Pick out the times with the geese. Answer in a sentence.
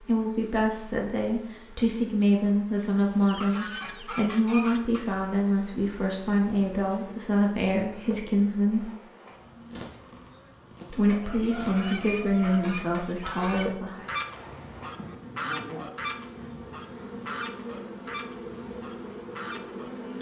You can hear the geese from 3.1 to 5.0 s and from 11.2 to 20.1 s.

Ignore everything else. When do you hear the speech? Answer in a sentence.
The speech can be heard from 0.0 to 8.9 s and from 10.9 to 14.1 s.